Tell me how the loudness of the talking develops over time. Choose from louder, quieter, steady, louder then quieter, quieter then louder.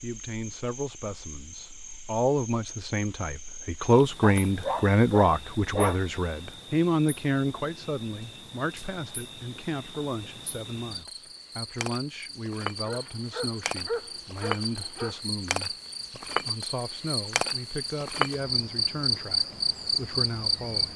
quieter.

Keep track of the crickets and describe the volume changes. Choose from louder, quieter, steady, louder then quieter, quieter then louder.
louder.